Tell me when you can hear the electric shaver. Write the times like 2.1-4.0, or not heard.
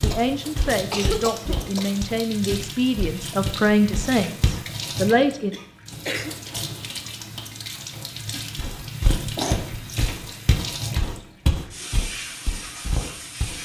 not heard.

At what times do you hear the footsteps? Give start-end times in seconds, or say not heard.
0.0-4.7, 8.6-13.6.